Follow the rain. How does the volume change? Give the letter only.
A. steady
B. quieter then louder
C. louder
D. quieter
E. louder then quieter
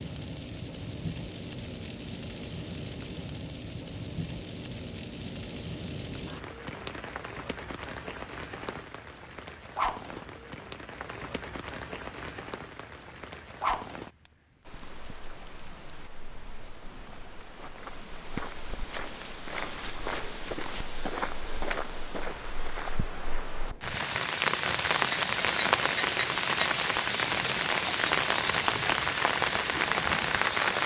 C.